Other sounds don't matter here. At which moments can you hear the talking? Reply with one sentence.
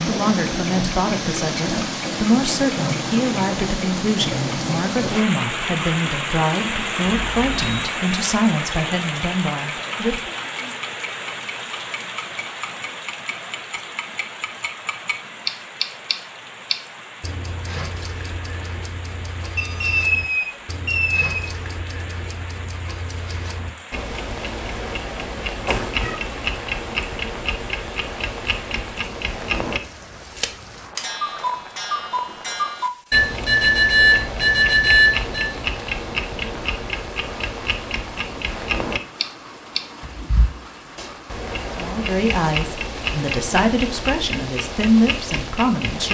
You can hear the talking from 0.1 to 10.3 s and from 41.8 to 46.1 s.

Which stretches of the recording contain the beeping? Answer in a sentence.
The beeping can be heard from 7.0 to 7.9 s, from 19.6 to 21.4 s and from 33.1 to 35.5 s.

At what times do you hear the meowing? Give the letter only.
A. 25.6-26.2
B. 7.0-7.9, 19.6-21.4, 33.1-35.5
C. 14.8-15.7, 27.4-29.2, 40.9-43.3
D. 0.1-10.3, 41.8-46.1
A.